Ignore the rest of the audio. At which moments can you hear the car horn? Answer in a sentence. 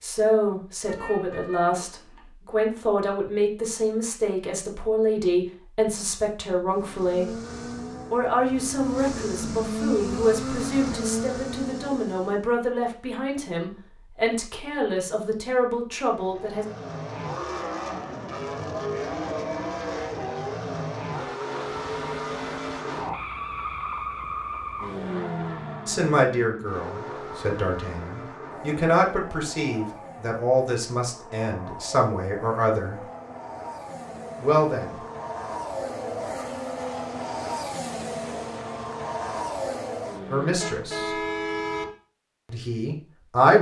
The car horn can be heard from 0.8 to 2.3 s and from 40.5 to 41.9 s.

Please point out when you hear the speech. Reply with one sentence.
The speech can be heard from 0.0 to 7.3 s, from 8.1 to 16.6 s, from 25.9 to 33.0 s, from 34.4 to 35.0 s, from 40.3 to 41.2 s and from 42.5 to 43.5 s.